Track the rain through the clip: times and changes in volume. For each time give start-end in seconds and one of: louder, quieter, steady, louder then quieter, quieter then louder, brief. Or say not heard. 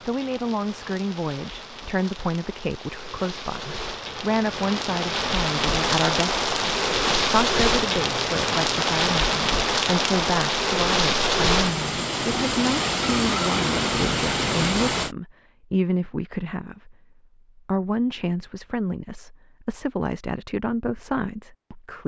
0.0-15.1 louder.